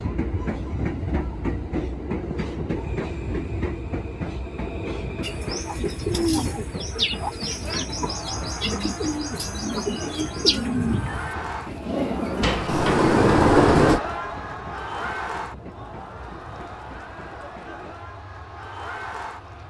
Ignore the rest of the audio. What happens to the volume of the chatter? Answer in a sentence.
The volume of the chatter goes up, then down.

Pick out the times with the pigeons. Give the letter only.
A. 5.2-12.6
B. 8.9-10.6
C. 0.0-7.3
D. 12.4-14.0
A.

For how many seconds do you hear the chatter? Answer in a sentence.
The chatter can be heard for 12 seconds in total.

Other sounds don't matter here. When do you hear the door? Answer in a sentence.
You can hear the door from 12.4 to 14.0 s.